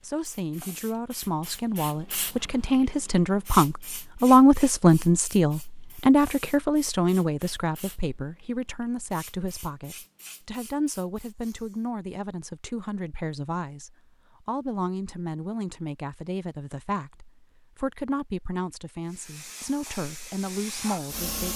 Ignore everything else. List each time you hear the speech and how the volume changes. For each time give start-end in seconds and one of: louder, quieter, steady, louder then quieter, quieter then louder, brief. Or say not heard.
0.0-21.5 quieter.